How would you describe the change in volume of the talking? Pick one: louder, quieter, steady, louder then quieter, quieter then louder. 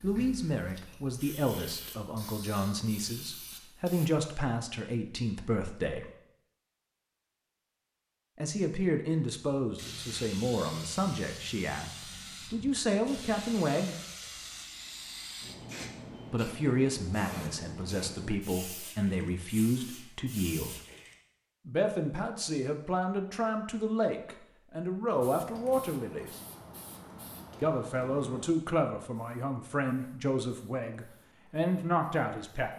steady.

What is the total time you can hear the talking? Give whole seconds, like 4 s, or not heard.
26 s.